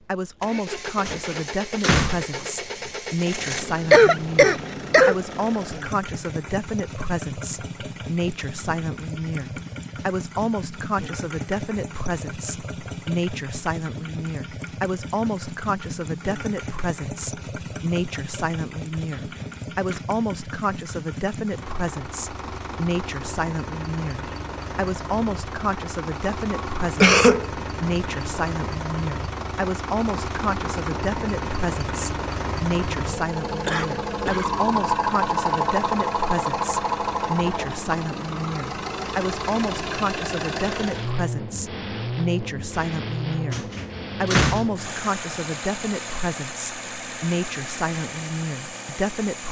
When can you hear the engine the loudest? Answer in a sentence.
The loudest moment of the engine is at 35 seconds.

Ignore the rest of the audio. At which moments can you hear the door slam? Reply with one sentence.
You can hear the door slam from 1.1 to 2.9 s, from 19.1 to 20.0 s and from 43.5 to 45.4 s.